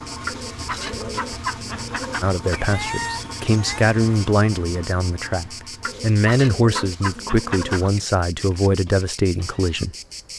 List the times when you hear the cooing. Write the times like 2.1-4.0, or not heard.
0.2-2.8, 5.8-8.1.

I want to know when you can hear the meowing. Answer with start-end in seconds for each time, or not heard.
2.5-3.9.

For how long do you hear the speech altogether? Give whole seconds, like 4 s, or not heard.
8 s.